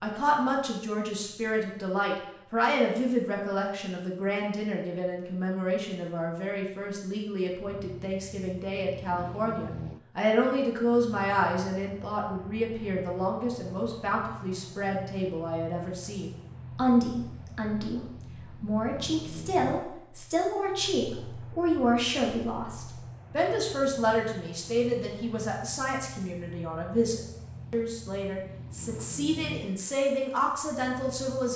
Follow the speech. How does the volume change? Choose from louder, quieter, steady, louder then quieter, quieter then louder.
steady.